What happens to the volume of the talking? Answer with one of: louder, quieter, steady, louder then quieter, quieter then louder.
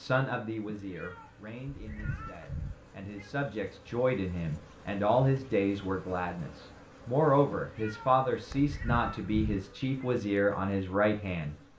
louder.